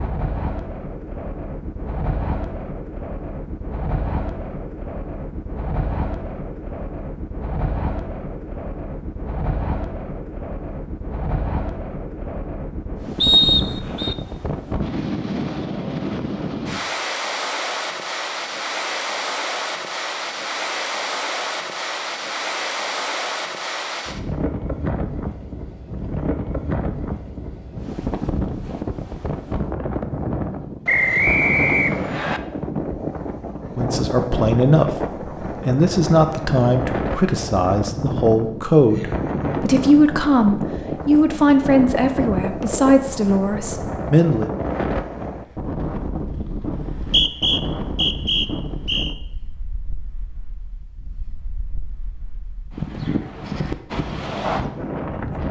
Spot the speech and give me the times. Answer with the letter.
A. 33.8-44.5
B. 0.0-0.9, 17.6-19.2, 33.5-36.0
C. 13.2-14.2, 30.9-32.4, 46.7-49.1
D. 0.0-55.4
A.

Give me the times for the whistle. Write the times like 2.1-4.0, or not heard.
13.2-14.2, 30.9-32.4, 46.7-49.1.